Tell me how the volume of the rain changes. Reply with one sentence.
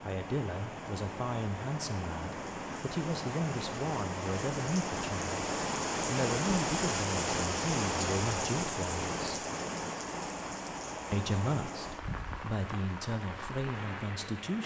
The loudness of the rain goes up, then down.